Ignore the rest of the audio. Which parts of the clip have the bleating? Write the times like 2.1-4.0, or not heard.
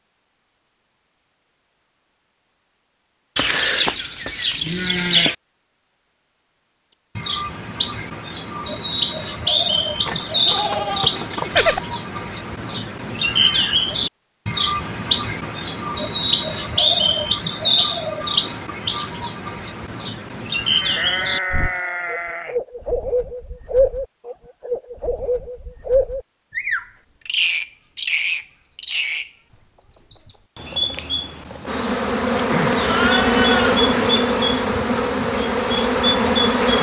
3.4-5.3, 10.1-11.8, 20.8-22.6, 32.5-34.1.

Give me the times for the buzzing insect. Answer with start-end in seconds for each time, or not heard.
31.6-36.7.